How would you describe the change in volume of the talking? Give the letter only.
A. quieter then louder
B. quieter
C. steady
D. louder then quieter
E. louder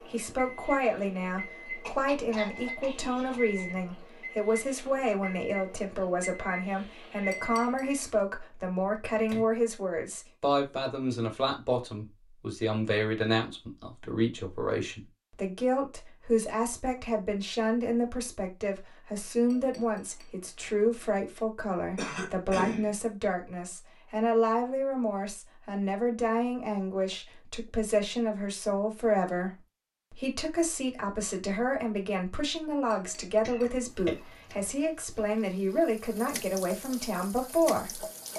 C.